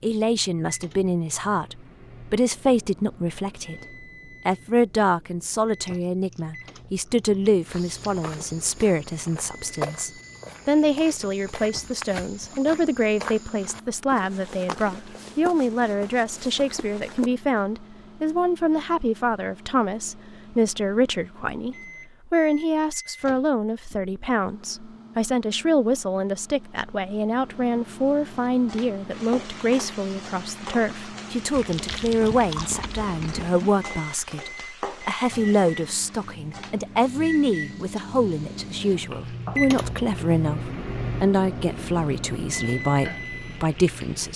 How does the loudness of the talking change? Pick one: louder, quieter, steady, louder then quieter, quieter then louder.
steady.